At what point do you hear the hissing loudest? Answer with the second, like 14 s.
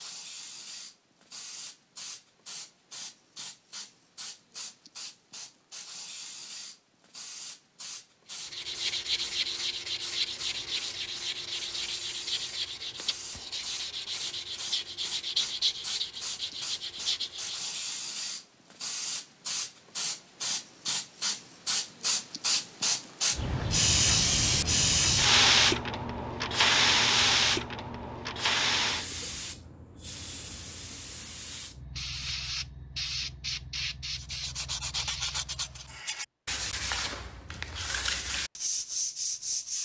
25 s.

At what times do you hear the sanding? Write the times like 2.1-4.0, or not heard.
8.3-17.9, 34.1-39.8.